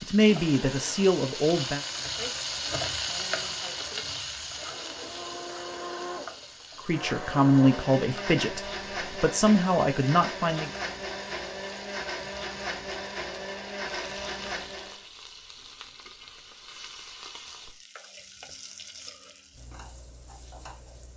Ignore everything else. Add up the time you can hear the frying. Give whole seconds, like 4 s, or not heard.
21 s.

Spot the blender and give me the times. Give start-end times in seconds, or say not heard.
0.2-15.1.